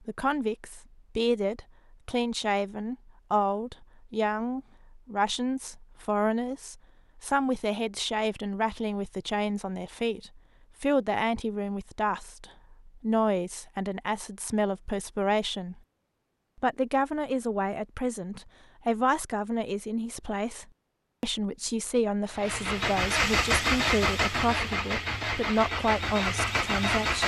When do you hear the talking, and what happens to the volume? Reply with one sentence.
The talking can be heard from 0.1 to 15.8 s, at a steady volume; and from 16.6 to 27.2 s, at a steady volume.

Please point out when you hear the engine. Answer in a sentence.
The engine can be heard from 22.3 to 27.2 s.